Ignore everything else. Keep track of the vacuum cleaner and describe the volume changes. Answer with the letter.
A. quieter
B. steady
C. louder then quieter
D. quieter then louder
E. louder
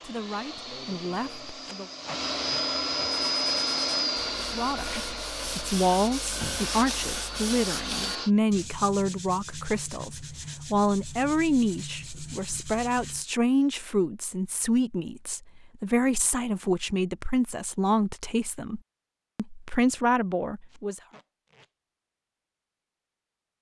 C.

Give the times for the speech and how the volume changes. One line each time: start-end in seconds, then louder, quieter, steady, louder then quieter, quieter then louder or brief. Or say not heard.
0.0-1.9 brief
4.5-21.0 steady.